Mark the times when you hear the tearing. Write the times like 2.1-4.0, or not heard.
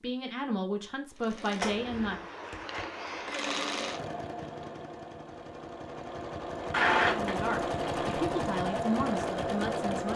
1.6-3.3, 6.7-8.2.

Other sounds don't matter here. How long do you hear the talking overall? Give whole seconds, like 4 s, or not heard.
5 s.